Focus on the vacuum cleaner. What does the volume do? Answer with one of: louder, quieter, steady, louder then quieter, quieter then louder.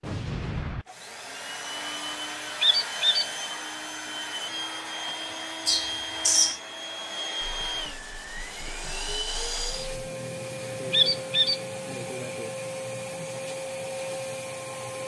steady.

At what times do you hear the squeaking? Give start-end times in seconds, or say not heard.
2.6-3.2, 5.7-6.6, 10.9-11.6.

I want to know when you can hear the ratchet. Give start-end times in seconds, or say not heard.
not heard.